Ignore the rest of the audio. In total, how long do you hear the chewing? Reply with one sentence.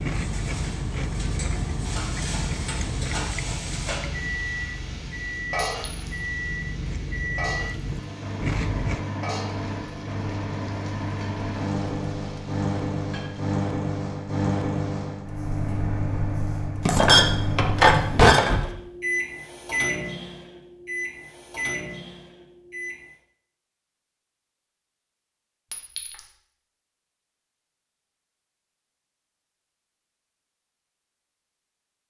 You can hear the chewing for 9 seconds altogether.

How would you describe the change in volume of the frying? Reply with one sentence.
The volume of the frying goes down.